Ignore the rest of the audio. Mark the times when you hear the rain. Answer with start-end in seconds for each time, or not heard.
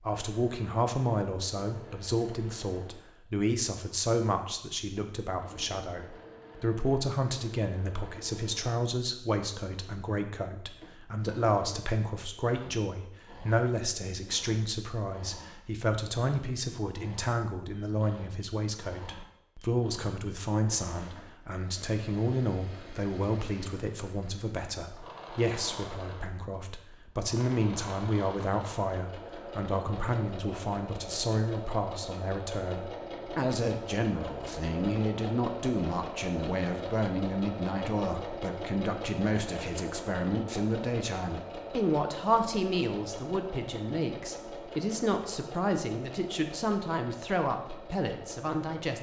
not heard.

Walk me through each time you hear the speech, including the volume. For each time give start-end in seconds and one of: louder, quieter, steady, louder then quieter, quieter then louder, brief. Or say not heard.
0.0-48.9 steady.